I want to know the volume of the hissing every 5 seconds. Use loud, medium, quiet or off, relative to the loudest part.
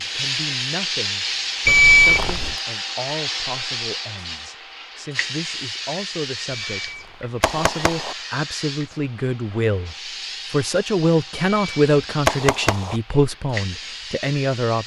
loud, medium, medium.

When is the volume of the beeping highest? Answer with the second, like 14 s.
2 s.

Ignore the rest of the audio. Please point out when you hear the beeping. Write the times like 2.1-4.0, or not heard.
1.6-2.5, 6.5-8.2, 11.3-12.9.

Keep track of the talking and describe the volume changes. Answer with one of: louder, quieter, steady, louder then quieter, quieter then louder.
louder.